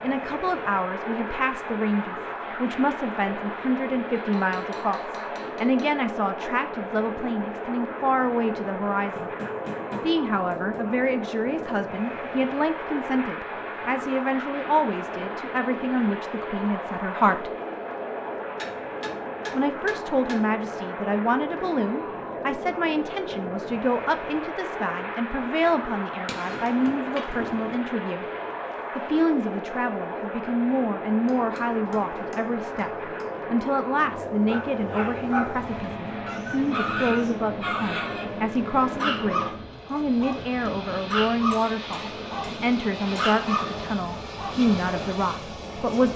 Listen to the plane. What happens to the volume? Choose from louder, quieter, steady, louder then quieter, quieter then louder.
steady.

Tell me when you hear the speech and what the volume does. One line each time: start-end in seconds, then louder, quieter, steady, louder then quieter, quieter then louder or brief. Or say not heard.
0.0-9.3 steady
10.0-17.5 steady
19.5-28.2 steady
28.9-46.1 steady.